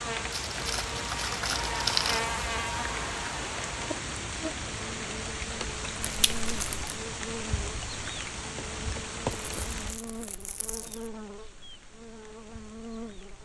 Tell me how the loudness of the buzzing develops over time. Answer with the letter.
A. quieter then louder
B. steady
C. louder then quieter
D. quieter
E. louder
D.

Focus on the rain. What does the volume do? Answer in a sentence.
The loudness of the rain goes down.